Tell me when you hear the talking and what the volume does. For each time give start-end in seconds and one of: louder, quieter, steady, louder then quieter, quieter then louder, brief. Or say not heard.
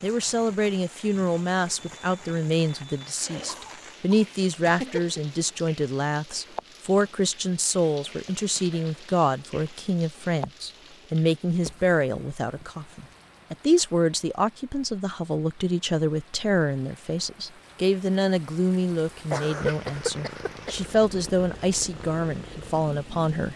0.0-23.5 steady.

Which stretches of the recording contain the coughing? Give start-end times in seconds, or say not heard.
3.2-5.2, 19.3-20.9.